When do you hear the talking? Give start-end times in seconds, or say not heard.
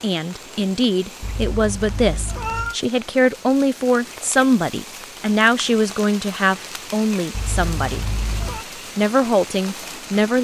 0.0-8.1, 8.9-10.4.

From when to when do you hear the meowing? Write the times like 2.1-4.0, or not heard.
1.2-2.8, 7.3-8.7.